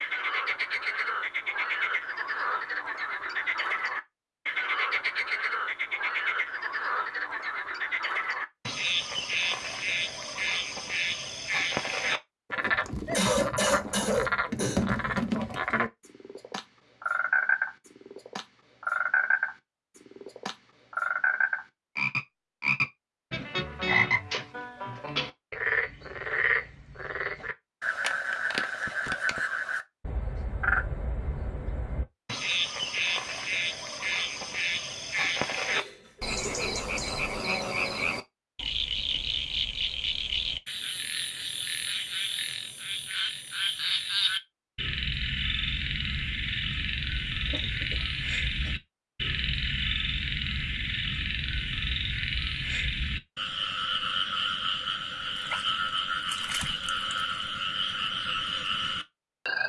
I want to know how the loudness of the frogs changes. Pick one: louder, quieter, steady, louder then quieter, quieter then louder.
steady.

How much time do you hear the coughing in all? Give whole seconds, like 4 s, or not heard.
4 s.